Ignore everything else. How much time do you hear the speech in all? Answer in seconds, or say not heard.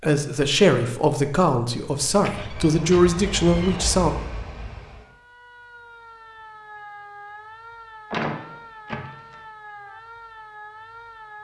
4 s.